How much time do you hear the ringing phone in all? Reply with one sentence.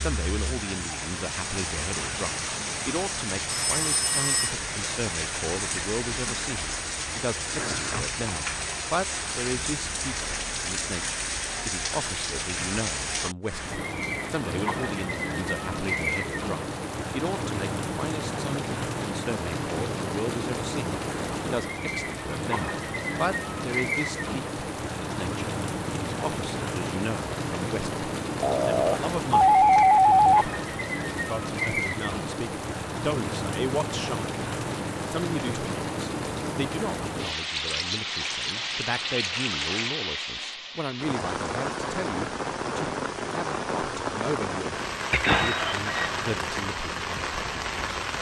You can hear the ringing phone for 4 seconds altogether.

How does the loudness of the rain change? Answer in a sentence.
The volume of the rain stays about the same.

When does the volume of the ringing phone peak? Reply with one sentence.
The loudest moment of the ringing phone is at 30 seconds.